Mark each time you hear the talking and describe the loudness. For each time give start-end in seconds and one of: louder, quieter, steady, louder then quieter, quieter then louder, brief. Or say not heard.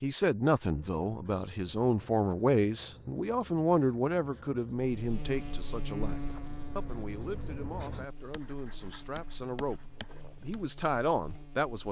0.0-11.8 quieter then louder.